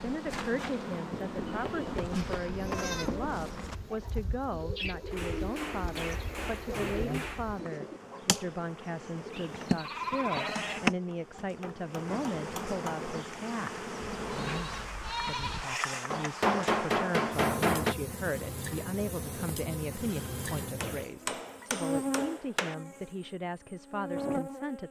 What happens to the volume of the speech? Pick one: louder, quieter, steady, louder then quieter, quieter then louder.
steady.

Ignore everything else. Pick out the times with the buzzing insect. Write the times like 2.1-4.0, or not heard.
0.0-24.8.